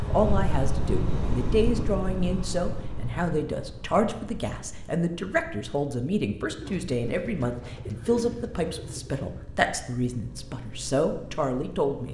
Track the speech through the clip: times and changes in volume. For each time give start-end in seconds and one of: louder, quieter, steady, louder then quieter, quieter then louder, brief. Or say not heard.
0.0-12.0 steady.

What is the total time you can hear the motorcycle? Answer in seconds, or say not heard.
12 s.